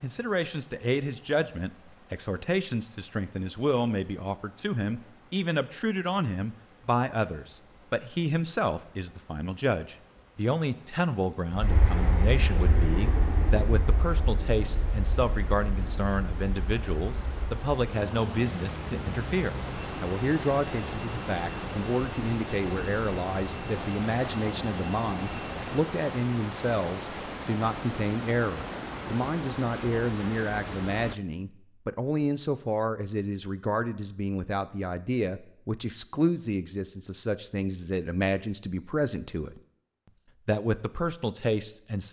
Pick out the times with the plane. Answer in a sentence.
You can hear the plane from 11.5 to 25.9 s.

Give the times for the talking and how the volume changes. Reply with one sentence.
You can hear the talking from 0.0 to 39.6 s, at a steady volume; and briefly from 40.5 to 42.0 s.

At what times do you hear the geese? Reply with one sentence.
The geese can't be heard in this clip.